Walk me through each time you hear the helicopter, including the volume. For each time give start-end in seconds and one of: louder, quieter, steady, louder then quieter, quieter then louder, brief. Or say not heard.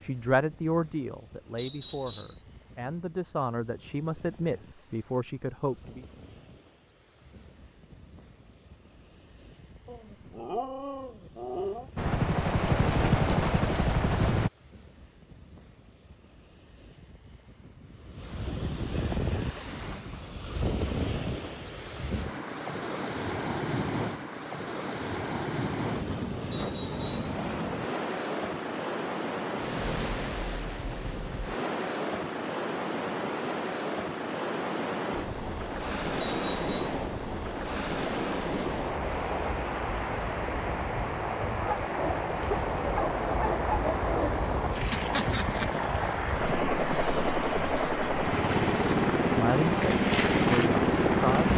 11.9-14.5 brief
35.1-51.5 louder.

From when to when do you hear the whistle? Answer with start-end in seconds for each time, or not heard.
1.6-2.4, 26.5-27.4, 36.2-37.0.